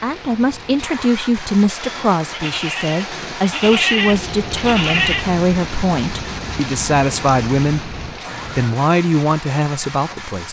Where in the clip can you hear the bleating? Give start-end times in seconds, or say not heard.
1.8-5.2.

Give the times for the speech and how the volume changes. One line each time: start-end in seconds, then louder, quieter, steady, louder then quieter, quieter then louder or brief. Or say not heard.
0.0-10.4 steady.